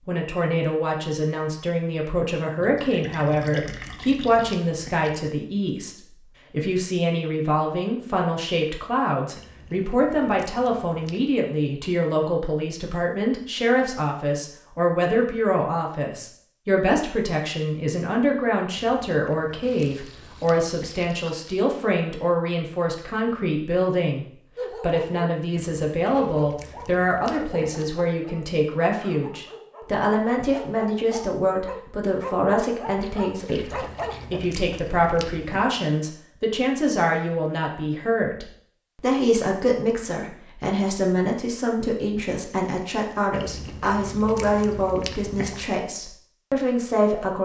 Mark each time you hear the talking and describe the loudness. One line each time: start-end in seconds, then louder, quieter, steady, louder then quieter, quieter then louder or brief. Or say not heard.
0.1-47.3 steady.